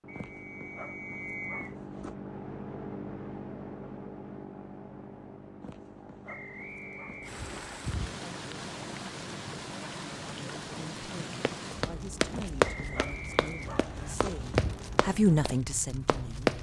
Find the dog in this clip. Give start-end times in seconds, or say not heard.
0.1-2.1, 5.6-8.2, 12.3-14.8.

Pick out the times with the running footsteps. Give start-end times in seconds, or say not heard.
11.4-16.5.